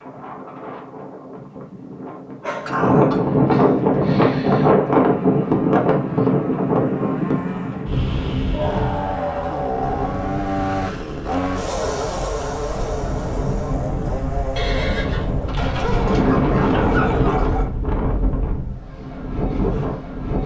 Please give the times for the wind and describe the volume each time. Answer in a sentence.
You can hear the wind from 0.0 to 20.4 s, getting quieter then louder.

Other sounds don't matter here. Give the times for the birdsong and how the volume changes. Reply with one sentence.
The birdsong can't be heard in this clip.